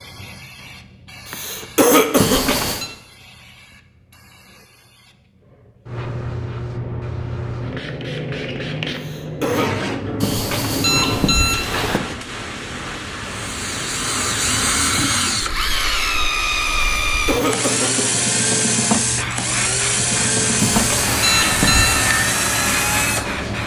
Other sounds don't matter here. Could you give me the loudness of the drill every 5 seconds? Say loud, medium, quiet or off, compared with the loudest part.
off, off, loud, loud, loud.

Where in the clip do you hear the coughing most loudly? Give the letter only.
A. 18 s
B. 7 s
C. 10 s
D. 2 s
D.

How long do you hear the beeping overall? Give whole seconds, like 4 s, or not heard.
4 s.